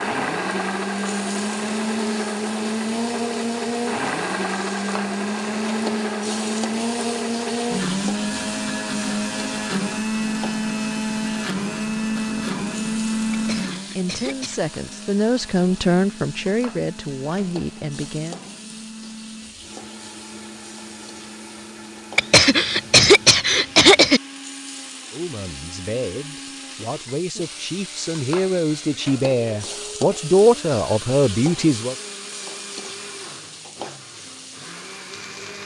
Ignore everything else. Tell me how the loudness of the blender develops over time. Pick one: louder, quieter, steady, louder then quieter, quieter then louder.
quieter.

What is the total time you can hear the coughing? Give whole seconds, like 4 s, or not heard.
3 s.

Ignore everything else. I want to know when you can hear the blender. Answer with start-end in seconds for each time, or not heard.
0.0-35.6.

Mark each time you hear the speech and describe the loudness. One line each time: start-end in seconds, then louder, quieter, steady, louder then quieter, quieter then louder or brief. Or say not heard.
13.9-18.4 louder then quieter
25.1-31.9 louder.